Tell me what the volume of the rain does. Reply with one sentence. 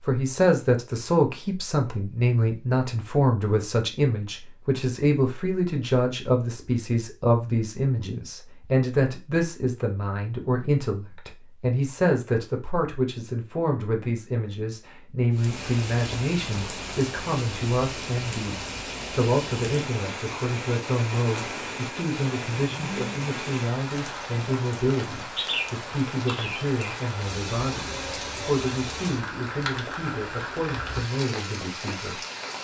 The volume of the rain stays about the same.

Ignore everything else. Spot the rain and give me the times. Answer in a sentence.
You can hear the rain from 15.3 to 32.5 s.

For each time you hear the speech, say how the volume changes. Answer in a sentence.
You can hear the speech from 0.0 to 32.2 s, getting quieter.